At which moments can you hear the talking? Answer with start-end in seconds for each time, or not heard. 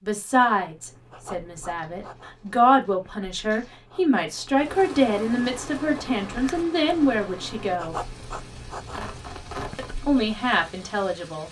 0.0-8.0, 9.8-11.4.